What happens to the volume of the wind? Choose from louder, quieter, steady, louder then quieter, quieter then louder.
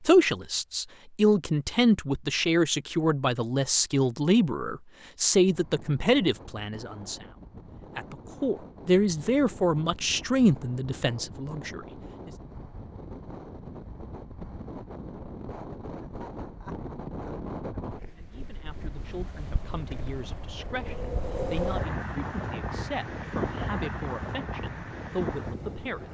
louder.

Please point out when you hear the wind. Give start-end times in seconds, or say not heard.
5.5-26.0.